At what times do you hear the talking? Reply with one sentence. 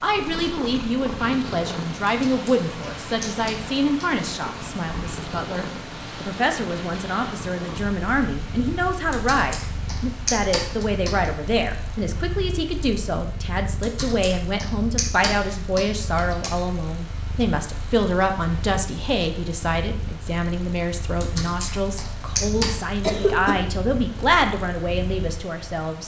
You can hear the talking from 0.0 to 26.0 s.